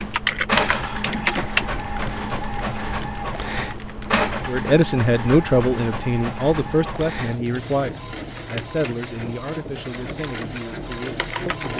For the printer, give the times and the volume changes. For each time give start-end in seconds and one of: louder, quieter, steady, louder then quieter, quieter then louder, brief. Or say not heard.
0.0-11.7 quieter.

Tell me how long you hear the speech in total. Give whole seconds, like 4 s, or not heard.
7 s.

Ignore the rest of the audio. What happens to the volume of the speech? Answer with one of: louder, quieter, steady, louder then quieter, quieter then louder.
quieter.